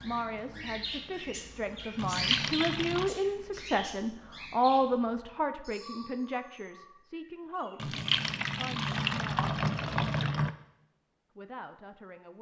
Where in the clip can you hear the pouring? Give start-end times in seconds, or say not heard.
1.9-3.1, 7.8-10.6.